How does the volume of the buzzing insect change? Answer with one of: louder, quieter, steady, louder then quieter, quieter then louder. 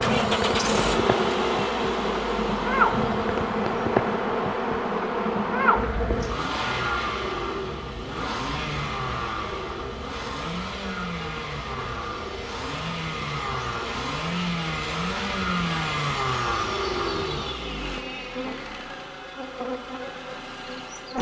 quieter.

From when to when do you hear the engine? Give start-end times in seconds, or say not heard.
0.0-21.1.